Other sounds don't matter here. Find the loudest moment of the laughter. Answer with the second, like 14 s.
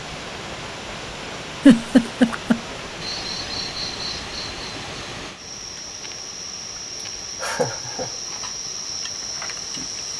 2 s.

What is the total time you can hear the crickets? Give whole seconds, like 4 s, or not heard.
7 s.